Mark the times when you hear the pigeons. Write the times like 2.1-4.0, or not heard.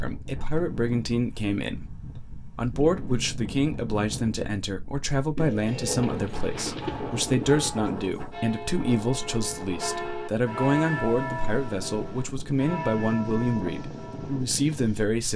5.3-7.7.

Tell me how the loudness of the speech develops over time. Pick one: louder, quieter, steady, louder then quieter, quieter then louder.
steady.